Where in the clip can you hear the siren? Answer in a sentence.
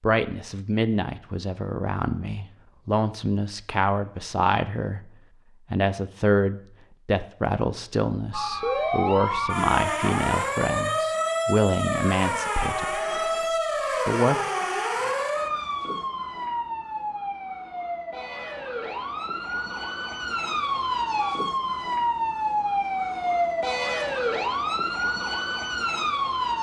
You can hear the siren from 8.3 to 26.5 s.